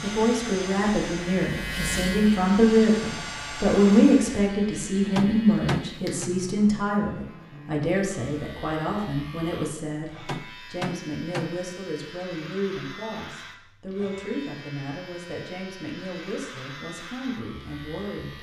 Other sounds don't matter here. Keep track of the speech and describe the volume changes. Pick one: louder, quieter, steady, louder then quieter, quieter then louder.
quieter.